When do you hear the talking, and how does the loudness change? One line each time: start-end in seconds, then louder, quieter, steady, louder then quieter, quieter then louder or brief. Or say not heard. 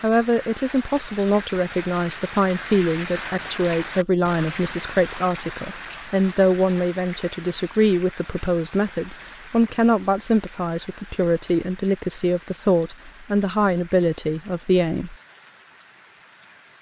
0.0-15.2 steady.